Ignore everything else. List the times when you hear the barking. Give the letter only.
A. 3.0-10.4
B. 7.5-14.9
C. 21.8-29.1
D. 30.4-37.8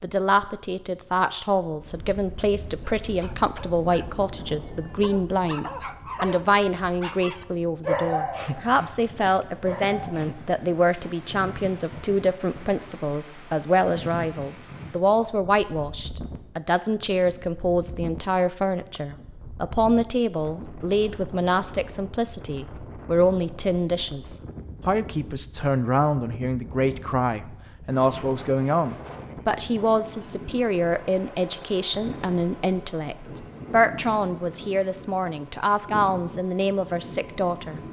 A.